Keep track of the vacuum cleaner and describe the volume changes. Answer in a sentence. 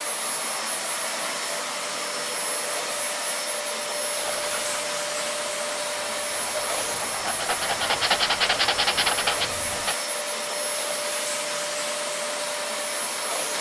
The volume of the vacuum cleaner stays about the same.